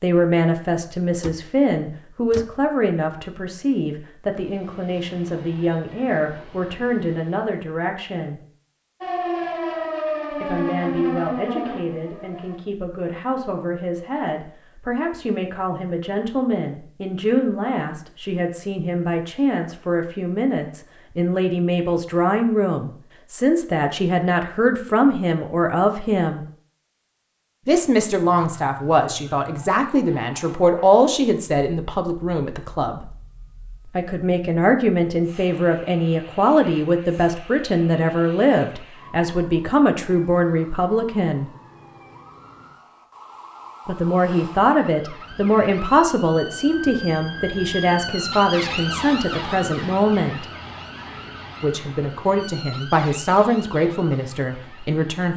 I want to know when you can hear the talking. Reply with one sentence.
You can hear the talking from 0.0 to 8.4 s, from 10.3 to 26.4 s, from 27.6 to 33.1 s, from 33.9 to 41.5 s, from 43.9 to 50.5 s and from 51.6 to 55.3 s.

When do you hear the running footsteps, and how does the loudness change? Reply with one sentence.
The running footsteps can't be heard in this clip.